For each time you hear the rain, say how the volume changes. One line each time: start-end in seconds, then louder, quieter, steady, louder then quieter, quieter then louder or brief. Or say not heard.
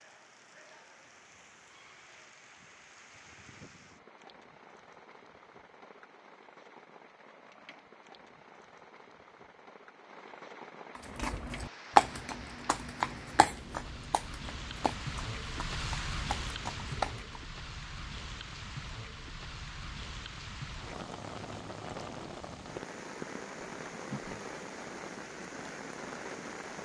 0.0-26.7 louder.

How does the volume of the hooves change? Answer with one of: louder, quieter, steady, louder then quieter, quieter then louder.
quieter.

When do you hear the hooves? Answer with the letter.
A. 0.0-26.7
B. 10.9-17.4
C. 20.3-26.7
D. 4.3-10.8
B.